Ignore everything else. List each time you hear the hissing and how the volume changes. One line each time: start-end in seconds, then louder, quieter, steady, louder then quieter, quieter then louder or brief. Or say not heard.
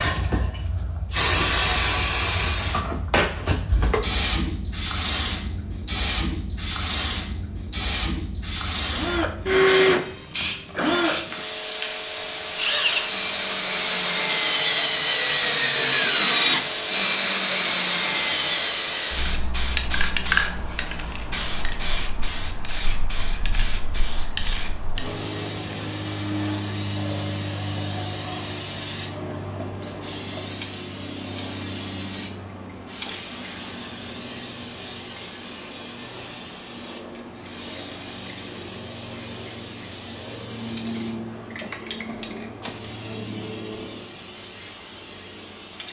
0.0-45.8 quieter.